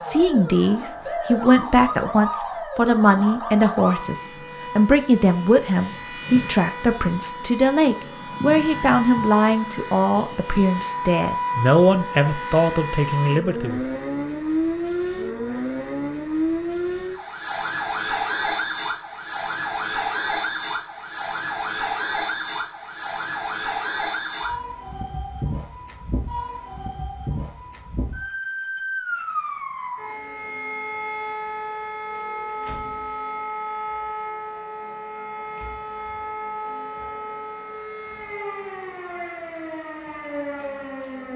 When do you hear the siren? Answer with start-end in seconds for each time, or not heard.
0.0-41.3.